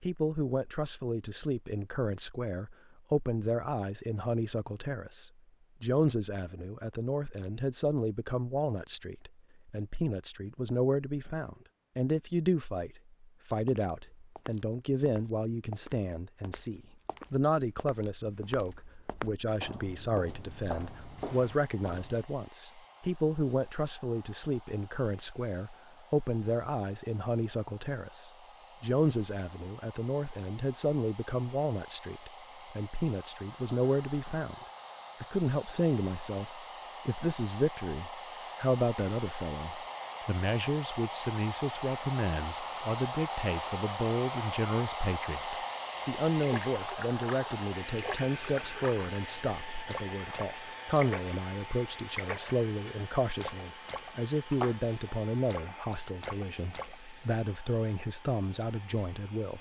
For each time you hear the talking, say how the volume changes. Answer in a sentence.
The talking can be heard from 0.0 to 34.5 s, at a steady volume; and from 35.2 to 59.5 s, at a steady volume.